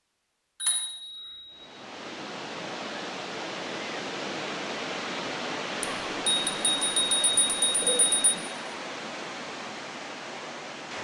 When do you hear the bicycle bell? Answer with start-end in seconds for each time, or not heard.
0.6-1.6, 5.8-8.3.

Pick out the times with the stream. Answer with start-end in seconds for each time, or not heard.
1.5-11.0.